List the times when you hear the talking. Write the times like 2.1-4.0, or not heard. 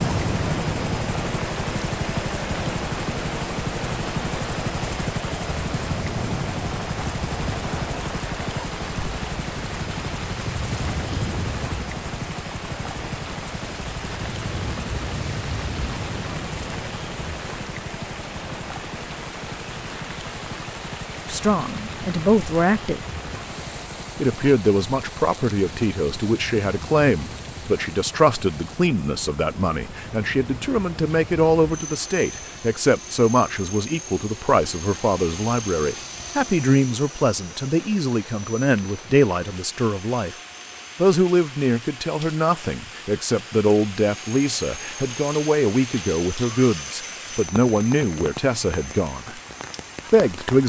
21.2-23.0, 24.1-40.4, 41.0-49.4, 50.1-50.6.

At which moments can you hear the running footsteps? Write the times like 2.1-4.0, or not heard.
not heard.